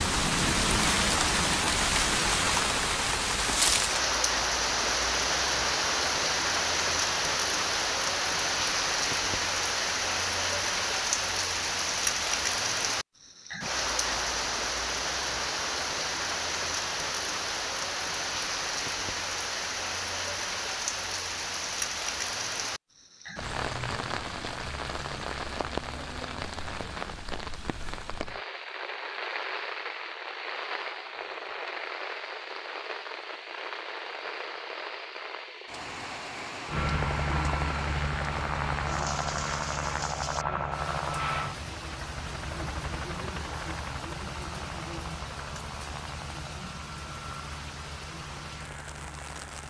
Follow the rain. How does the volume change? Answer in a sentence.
The loudness of the rain goes down.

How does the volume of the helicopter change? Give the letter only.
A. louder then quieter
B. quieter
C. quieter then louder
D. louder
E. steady
B.